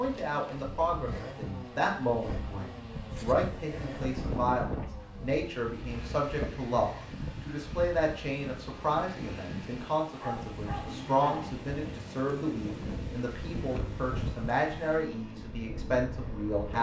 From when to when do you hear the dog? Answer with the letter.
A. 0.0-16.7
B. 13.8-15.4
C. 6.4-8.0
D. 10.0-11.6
D.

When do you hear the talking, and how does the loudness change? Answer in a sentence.
The talking can be heard from 0.0 to 16.7 s, at a steady volume.